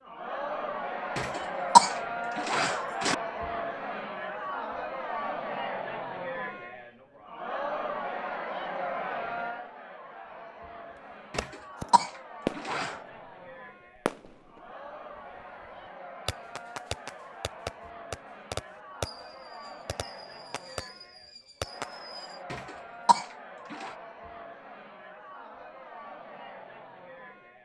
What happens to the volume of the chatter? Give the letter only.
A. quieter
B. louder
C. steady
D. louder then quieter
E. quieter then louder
A.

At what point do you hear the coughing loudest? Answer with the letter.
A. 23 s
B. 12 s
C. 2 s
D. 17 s
C.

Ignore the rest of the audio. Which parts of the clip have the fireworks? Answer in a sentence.
You can hear the fireworks from 11.3 to 13.3 s, from 14.1 to 14.7 s and from 16.2 to 22.4 s.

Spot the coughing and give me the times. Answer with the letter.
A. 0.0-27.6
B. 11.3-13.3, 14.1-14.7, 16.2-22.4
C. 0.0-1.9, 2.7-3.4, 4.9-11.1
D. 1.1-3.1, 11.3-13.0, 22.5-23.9
D.